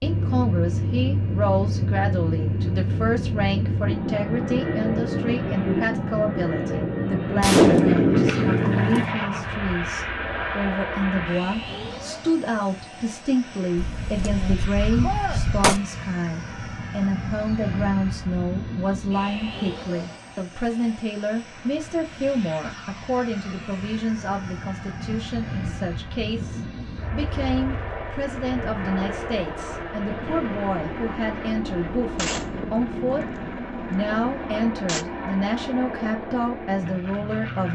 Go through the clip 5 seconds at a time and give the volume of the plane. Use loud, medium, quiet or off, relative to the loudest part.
loud, loud, medium, medium, quiet, medium, medium, medium.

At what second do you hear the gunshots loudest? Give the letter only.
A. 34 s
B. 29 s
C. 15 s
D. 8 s
D.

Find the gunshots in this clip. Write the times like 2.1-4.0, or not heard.
7.4-9.1, 13.8-15.8, 32.1-35.0.